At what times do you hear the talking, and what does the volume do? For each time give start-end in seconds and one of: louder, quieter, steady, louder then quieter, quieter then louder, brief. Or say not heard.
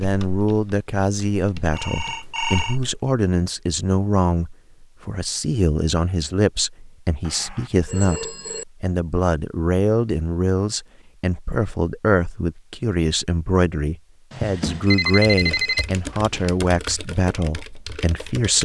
0.0-18.6 steady.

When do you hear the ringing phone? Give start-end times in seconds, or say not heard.
1.7-2.8, 7.2-8.7, 14.3-16.5.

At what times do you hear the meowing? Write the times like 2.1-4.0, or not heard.
not heard.